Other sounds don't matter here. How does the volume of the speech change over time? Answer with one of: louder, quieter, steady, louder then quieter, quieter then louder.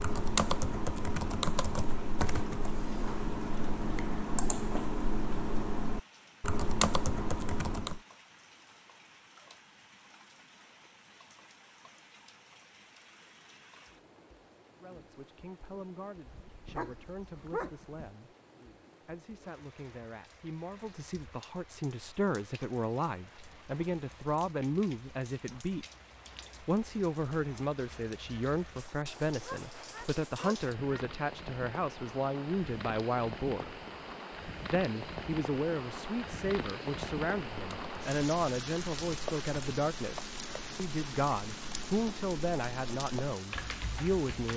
louder.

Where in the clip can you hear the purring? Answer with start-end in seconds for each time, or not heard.
not heard.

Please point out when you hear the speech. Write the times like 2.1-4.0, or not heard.
14.8-18.4, 19.1-25.9, 26.6-33.7, 34.7-44.5.